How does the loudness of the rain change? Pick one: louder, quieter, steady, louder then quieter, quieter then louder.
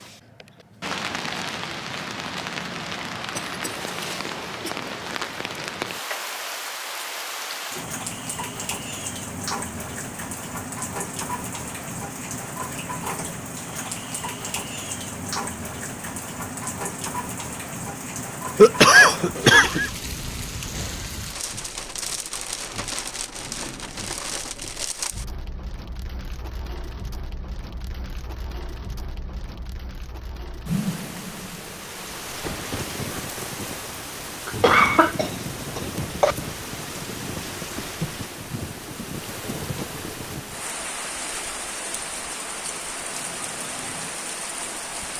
steady.